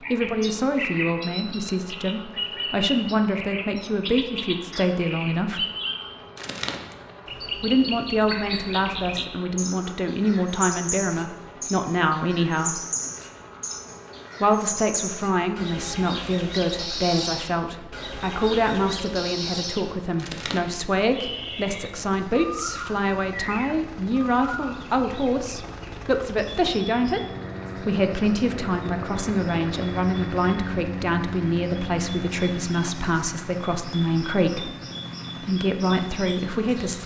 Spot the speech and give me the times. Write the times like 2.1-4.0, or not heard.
0.0-5.7, 7.6-12.8, 14.4-34.8, 35.4-37.0.